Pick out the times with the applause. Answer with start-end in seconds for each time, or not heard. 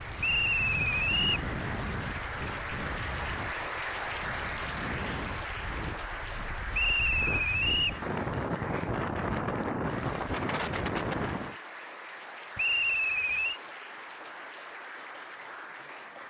0.0-16.2.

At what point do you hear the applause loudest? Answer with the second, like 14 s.
4 s.